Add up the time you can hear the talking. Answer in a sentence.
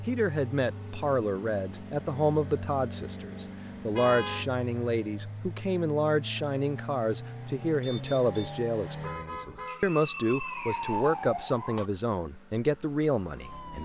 The talking can be heard for 14 seconds in total.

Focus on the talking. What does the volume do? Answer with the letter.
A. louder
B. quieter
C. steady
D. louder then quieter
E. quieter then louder
C.